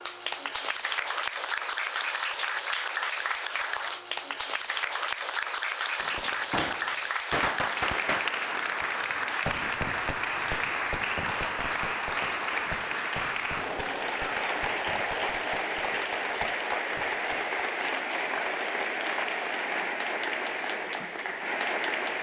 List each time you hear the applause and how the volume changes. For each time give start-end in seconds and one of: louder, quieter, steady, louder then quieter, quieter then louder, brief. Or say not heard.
0.0-22.1 steady.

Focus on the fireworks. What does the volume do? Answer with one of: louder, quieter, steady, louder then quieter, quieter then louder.
quieter.